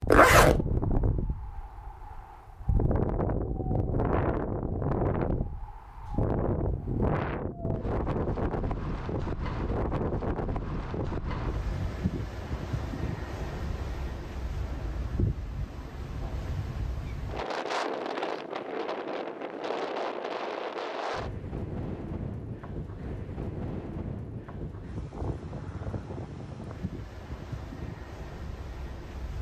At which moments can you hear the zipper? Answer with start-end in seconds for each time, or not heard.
0.1-0.6.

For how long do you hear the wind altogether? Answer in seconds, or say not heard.
29 s.